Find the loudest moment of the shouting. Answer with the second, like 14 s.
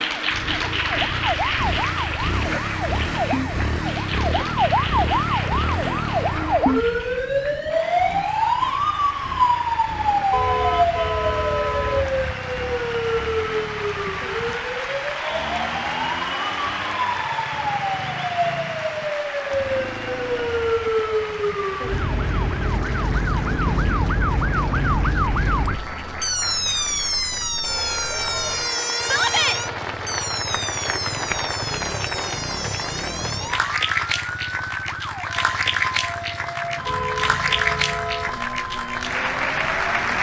29 s.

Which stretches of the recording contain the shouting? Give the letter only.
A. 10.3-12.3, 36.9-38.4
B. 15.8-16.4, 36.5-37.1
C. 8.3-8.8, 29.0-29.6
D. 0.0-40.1
C.